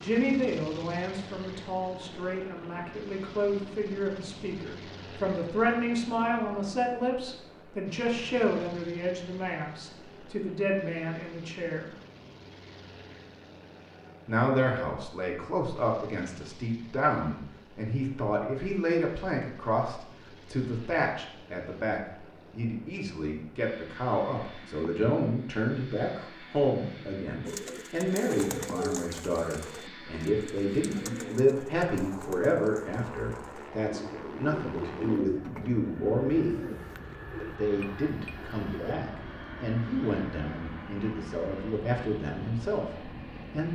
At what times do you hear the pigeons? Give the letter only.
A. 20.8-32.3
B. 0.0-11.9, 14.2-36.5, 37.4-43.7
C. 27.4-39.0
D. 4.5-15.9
C.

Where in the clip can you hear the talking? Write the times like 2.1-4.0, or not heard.
0.0-11.9, 14.2-36.5, 37.4-43.7.